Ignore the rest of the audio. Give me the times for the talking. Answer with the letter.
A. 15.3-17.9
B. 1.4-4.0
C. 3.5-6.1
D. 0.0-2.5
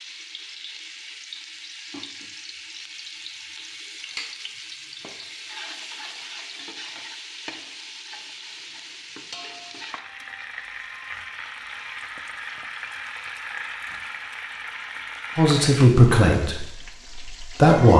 A.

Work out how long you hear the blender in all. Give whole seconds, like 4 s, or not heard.
not heard.